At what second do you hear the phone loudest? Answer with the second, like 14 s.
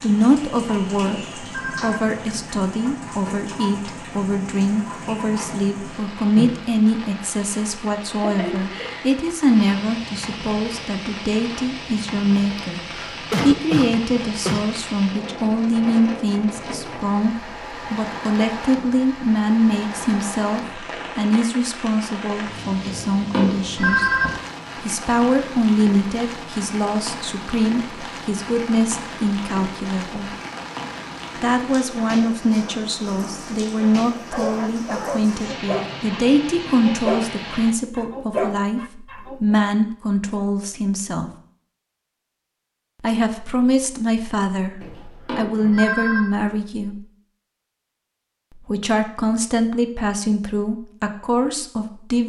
24 s.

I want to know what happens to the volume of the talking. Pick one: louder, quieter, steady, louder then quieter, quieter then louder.
steady.